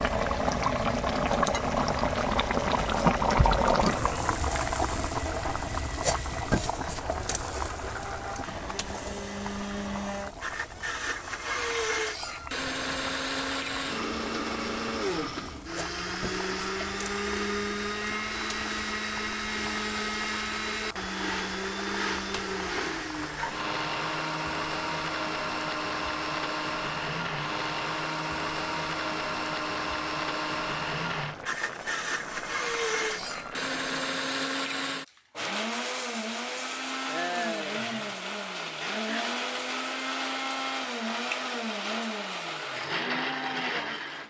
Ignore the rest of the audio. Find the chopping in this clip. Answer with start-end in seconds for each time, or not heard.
not heard.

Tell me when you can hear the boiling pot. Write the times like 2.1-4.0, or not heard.
0.0-34.0.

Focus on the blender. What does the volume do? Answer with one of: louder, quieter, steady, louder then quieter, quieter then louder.
steady.